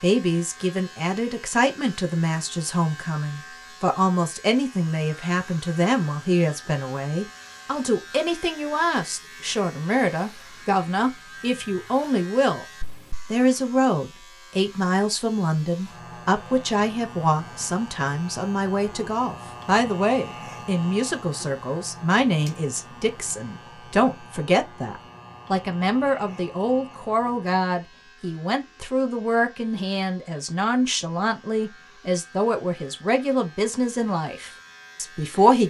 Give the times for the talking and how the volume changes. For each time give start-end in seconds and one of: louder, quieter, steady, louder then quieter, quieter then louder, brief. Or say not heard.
0.0-12.7 steady
13.3-35.6 steady.